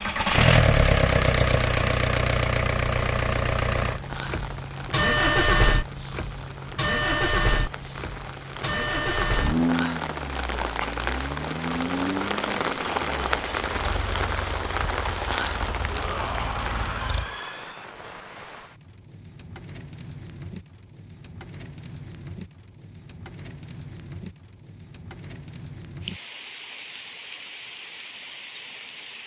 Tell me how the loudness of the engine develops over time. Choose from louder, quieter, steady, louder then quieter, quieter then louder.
quieter.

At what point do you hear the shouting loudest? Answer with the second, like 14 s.
16 s.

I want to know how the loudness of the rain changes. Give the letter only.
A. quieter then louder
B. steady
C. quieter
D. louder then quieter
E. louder
D.